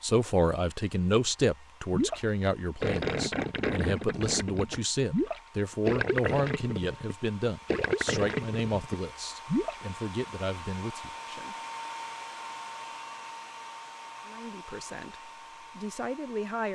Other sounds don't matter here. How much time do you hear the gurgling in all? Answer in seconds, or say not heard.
8 s.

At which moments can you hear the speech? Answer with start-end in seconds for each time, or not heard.
0.0-11.6, 14.2-16.7.